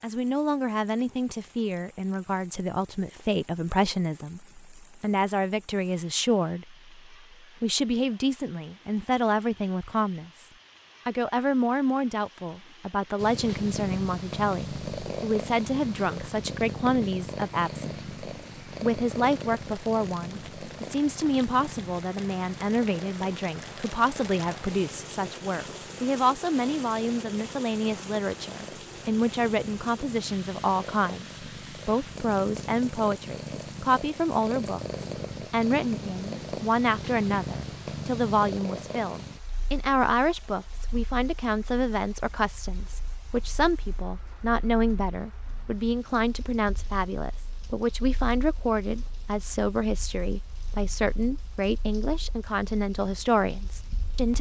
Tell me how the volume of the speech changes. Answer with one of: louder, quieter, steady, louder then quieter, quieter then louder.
steady.